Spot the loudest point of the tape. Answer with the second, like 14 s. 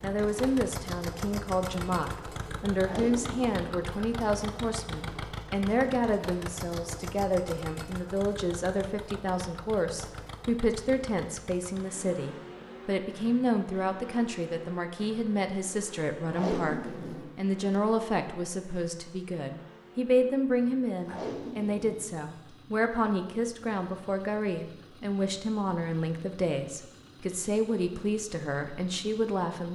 17 s.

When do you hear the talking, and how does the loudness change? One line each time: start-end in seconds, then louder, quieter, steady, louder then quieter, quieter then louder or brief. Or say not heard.
0.0-29.6 steady.